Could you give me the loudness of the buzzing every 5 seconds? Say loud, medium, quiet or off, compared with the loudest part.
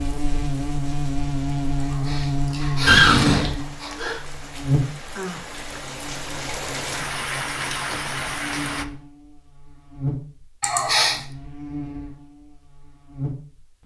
loud, quiet, medium.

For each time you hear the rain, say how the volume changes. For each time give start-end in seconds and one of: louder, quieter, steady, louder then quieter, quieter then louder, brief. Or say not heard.
0.0-8.8 louder.